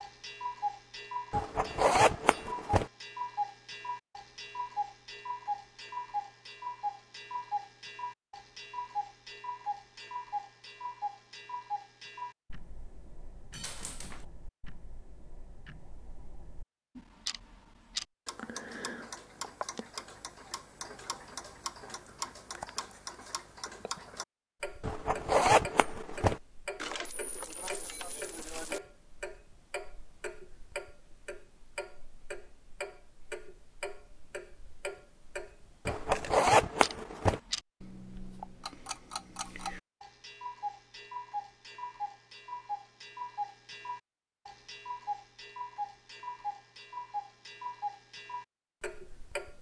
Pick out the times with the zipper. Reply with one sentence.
The zipper can be heard from 1.3 to 2.9 s, from 24.8 to 26.4 s and from 35.9 to 37.4 s.